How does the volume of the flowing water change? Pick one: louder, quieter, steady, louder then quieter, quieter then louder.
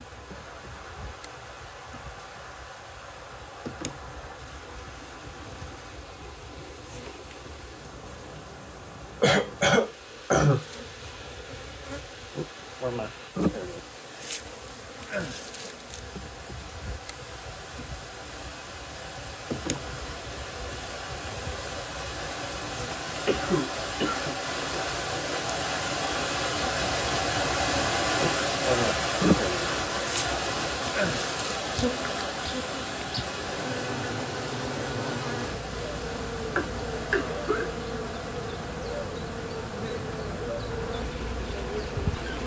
louder then quieter.